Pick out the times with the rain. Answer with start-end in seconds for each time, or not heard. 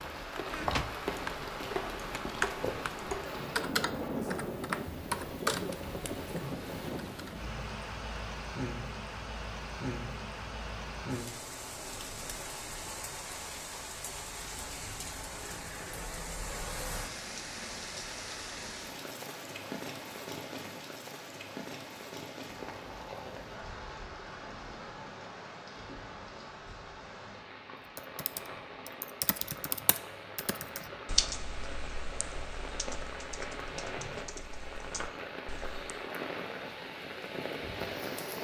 0.0-38.3.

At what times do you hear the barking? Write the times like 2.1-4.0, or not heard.
not heard.